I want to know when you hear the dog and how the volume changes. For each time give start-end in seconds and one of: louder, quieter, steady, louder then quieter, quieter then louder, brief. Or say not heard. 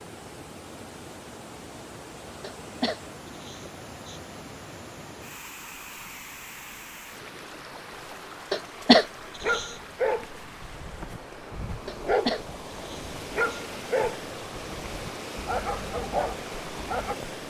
9.4-17.1 steady.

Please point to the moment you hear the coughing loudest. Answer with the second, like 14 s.
9 s.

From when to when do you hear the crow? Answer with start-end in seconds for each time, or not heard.
not heard.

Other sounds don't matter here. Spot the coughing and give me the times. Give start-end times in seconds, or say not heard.
2.4-4.2, 8.5-9.7, 11.8-13.6.